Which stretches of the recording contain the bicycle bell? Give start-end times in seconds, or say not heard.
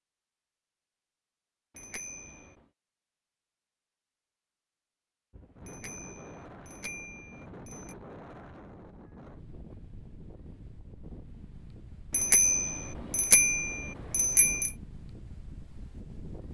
1.8-2.5, 5.7-8.0, 12.1-14.7.